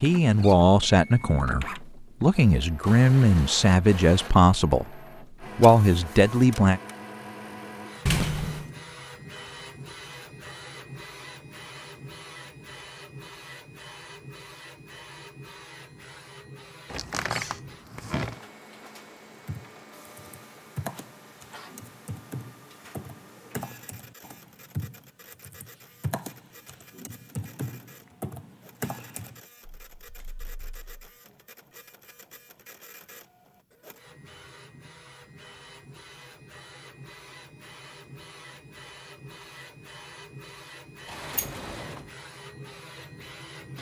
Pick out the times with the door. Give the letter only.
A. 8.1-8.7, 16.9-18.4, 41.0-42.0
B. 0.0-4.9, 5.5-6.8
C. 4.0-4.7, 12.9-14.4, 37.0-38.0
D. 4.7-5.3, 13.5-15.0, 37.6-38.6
A.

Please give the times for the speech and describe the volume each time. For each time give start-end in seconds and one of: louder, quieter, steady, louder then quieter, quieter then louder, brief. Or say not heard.
0.0-4.9 quieter then louder
5.5-6.8 brief.